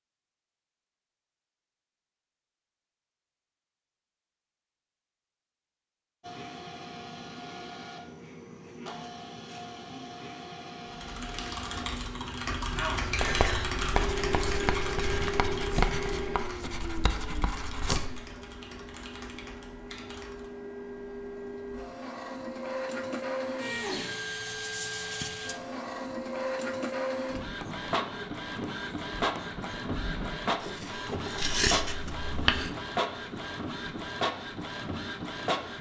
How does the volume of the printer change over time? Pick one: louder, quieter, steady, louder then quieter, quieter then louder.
louder.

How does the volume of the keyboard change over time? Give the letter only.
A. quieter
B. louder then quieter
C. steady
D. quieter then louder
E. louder
A.